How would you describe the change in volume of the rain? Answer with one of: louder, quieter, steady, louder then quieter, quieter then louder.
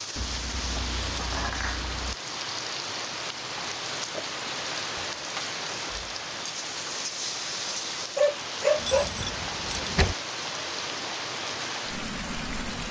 steady.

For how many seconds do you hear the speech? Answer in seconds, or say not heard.
not heard.